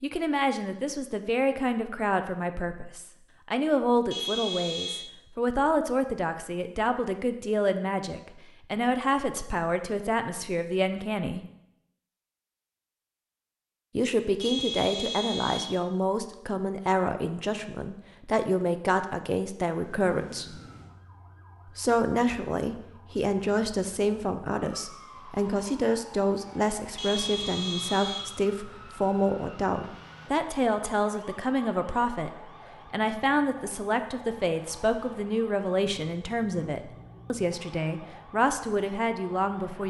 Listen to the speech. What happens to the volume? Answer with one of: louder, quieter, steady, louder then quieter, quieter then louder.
steady.